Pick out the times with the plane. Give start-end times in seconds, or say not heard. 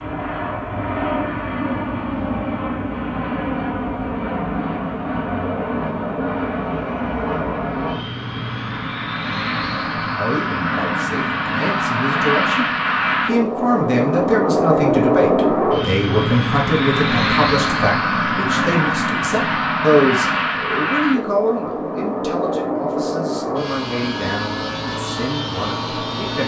0.0-26.4.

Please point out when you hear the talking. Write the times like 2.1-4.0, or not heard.
10.1-26.4.